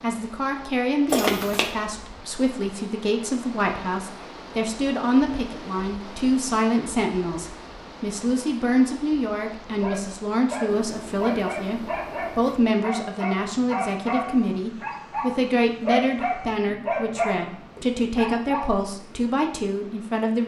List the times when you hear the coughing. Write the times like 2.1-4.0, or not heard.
1.1-1.7.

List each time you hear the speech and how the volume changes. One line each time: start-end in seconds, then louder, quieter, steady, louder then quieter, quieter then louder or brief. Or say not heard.
0.0-20.4 steady.